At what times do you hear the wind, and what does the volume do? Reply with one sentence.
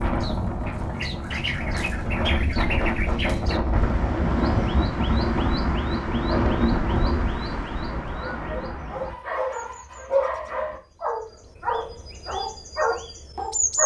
You can hear the wind from 0.0 to 7.5 s, getting louder.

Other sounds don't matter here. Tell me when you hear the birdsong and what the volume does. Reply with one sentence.
The birdsong can be heard from 0.0 to 13.8 s, getting quieter.